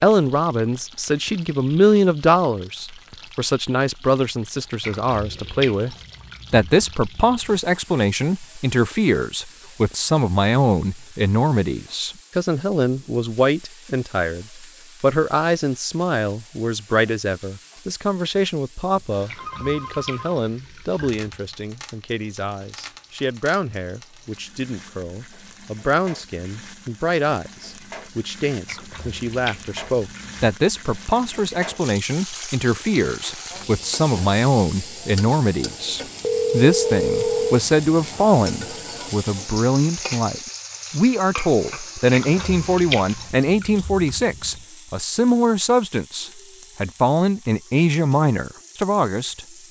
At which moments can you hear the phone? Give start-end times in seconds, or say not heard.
18.9-20.2, 36.2-37.6.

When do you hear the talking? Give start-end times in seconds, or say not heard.
0.0-49.4.